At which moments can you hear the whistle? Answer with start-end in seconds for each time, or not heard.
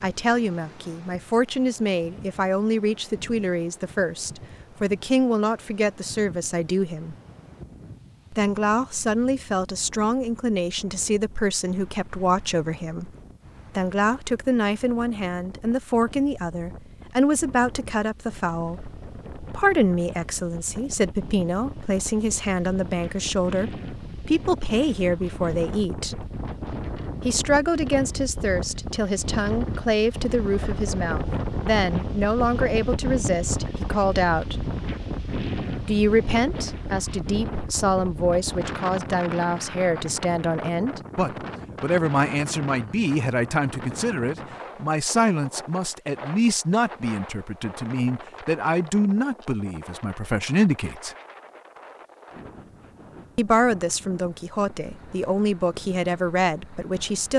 not heard.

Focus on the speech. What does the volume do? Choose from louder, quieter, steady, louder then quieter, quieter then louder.
steady.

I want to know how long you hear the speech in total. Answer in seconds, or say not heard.
51 s.